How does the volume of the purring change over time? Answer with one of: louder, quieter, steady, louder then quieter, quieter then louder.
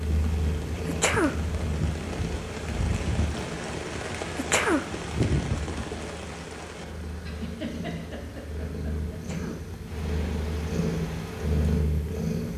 quieter then louder.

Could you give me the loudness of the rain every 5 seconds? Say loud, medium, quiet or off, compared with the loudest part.
loud, loud, medium.